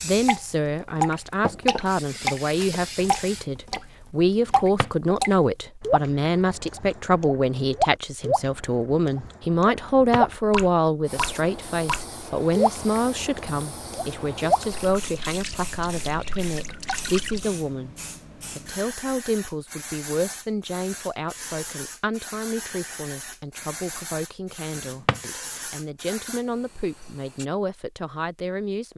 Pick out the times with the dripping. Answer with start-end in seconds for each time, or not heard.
0.2-17.4.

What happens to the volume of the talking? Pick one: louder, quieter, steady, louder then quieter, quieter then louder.
quieter.